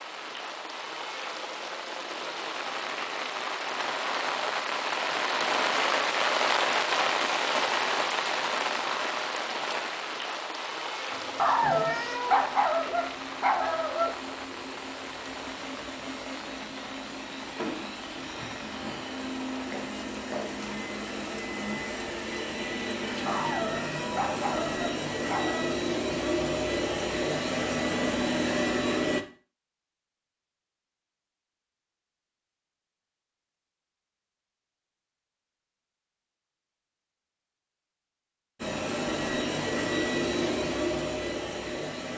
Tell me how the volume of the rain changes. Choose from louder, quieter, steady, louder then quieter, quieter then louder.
louder then quieter.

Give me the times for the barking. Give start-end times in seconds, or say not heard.
11.3-14.2, 23.2-25.8.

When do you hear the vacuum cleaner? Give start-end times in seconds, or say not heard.
11.1-29.2, 38.6-42.1.